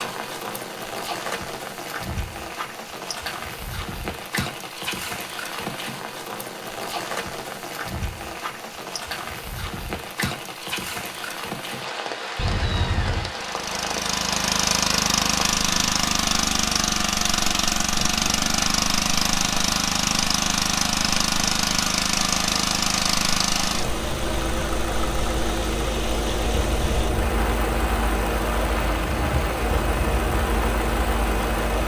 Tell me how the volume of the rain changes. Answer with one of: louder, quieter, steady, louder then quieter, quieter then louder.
steady.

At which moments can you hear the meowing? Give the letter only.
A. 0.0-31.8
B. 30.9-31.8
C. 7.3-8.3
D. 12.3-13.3
D.